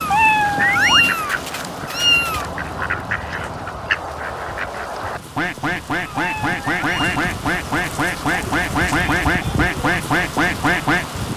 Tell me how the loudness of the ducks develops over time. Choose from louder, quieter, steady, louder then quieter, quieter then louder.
louder.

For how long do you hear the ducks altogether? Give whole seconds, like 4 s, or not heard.
11 s.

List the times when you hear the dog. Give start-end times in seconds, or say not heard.
not heard.